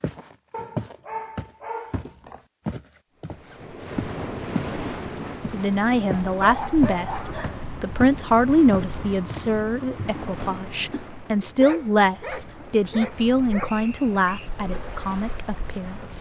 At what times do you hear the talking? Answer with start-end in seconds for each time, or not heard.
5.5-16.1.